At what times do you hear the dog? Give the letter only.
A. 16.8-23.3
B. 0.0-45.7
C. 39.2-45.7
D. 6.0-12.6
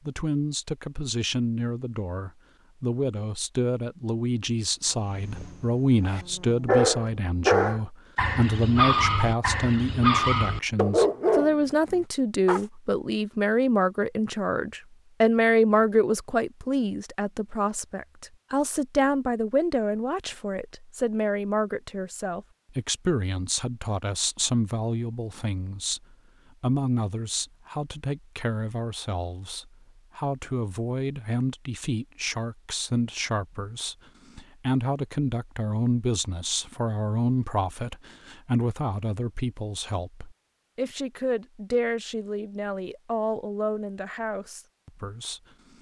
D.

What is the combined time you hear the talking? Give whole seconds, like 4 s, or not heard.
46 s.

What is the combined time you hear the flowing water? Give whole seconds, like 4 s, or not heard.
not heard.